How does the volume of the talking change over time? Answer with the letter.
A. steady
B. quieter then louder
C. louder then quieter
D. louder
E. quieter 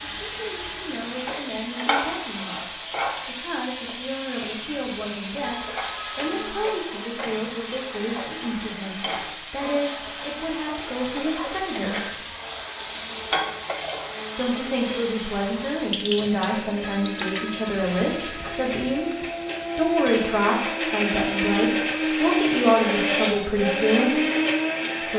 D.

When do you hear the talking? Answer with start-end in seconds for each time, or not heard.
0.0-12.2, 14.3-19.1, 19.8-24.2.